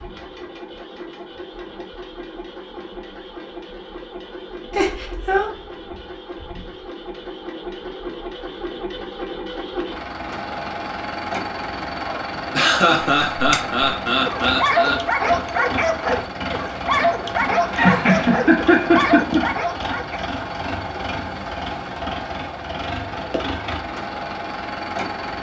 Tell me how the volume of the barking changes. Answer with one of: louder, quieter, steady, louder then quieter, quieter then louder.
steady.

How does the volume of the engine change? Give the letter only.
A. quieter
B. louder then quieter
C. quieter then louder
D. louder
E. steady
D.